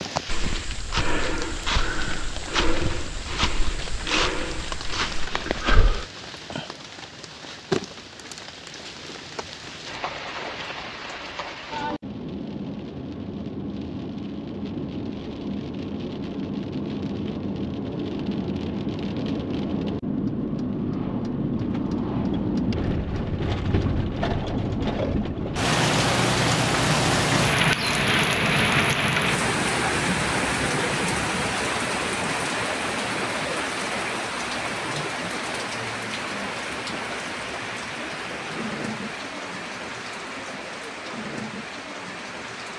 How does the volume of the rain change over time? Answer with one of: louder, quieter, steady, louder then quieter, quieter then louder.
louder then quieter.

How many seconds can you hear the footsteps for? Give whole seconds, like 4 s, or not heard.
6 s.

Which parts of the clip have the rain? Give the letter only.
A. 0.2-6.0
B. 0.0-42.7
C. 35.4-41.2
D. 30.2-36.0
B.